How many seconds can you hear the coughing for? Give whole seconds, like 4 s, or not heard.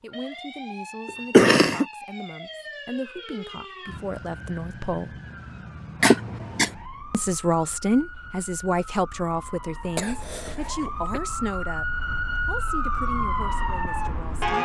3 s.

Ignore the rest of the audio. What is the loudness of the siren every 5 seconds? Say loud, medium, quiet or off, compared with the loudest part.
medium, quiet, loud.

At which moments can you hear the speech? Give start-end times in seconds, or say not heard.
0.0-5.2, 7.1-11.8, 12.4-14.6.